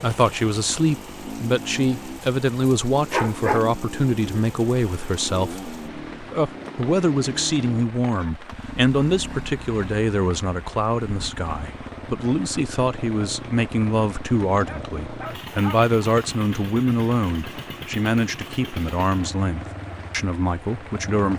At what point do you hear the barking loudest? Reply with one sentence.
The volume of the barking peaks at 3 seconds.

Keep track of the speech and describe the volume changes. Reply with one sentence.
The volume of the speech stays about the same.